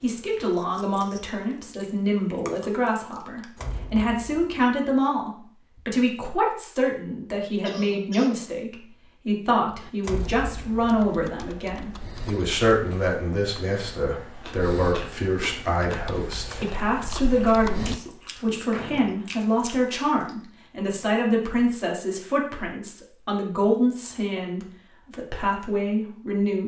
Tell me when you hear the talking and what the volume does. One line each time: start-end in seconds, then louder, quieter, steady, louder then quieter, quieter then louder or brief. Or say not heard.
0.0-26.6 steady.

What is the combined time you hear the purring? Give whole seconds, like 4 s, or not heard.
not heard.